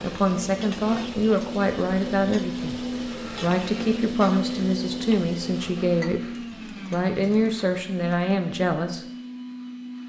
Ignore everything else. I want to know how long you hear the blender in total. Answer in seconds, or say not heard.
10 s.